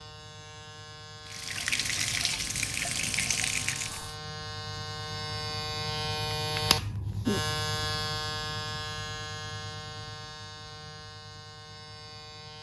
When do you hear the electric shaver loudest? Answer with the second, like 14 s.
7 s.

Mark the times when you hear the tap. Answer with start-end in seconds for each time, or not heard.
1.2-4.2.